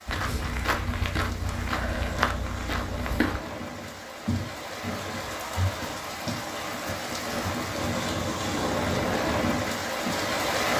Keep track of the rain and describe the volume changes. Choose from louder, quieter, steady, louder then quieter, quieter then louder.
louder.